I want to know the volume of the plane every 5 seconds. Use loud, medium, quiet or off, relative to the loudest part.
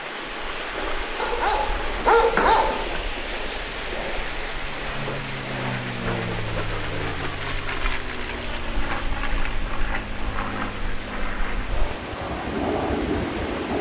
quiet, loud, loud.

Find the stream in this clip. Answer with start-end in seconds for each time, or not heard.
0.0-13.7.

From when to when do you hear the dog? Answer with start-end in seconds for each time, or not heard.
1.1-3.0.